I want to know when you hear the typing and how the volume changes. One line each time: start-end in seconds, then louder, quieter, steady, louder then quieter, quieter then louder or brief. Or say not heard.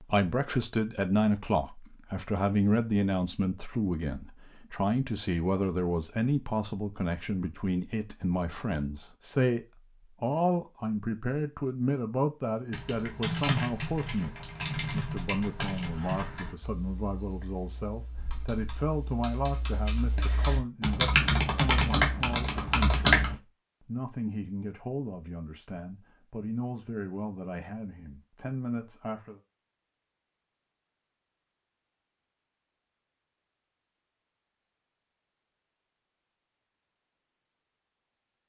12.7-23.4 quieter then louder.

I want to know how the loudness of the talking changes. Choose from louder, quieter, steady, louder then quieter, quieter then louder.
quieter.